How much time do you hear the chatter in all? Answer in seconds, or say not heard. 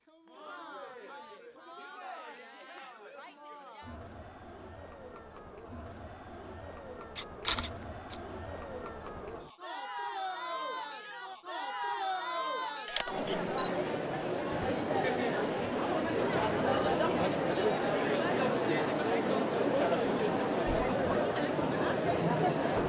23 s.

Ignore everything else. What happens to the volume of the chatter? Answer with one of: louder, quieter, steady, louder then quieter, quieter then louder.
louder.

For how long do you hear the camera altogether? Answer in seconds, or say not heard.
2 s.